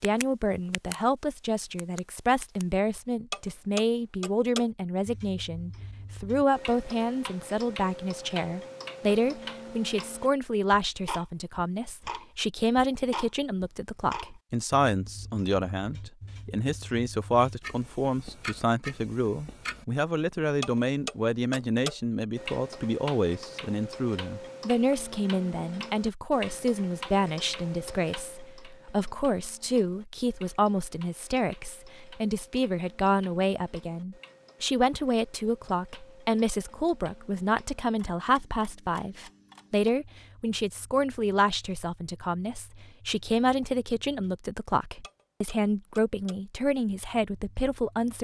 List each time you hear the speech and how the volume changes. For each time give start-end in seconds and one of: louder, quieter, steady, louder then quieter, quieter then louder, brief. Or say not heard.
0.0-48.1 steady.